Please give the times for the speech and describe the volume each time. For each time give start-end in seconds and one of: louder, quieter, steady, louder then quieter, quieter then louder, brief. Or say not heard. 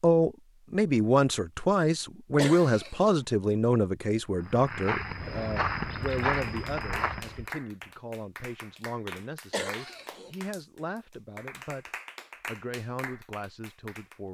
0.0-14.2 quieter.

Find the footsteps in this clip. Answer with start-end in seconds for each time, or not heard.
4.4-7.5.